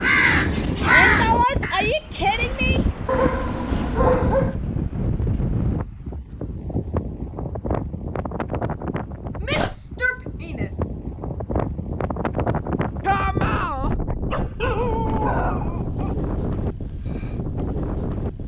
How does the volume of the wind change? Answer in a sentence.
The volume of the wind stays about the same.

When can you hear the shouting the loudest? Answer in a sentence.
The volume of the shouting peaks at 1 second.